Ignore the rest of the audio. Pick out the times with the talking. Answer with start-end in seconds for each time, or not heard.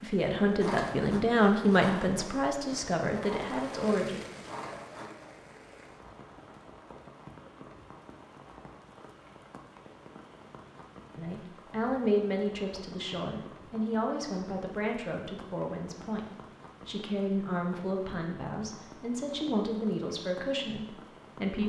0.0-4.2, 11.2-21.6.